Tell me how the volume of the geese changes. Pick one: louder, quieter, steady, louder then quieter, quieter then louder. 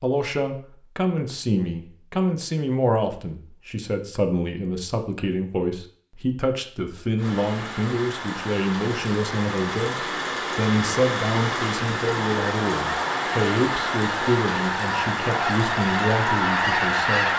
louder.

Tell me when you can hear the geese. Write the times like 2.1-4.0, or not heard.
12.1-17.3.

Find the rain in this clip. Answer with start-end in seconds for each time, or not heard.
7.2-17.3.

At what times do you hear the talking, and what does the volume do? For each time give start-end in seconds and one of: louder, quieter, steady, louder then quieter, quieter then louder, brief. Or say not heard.
0.0-17.3 steady.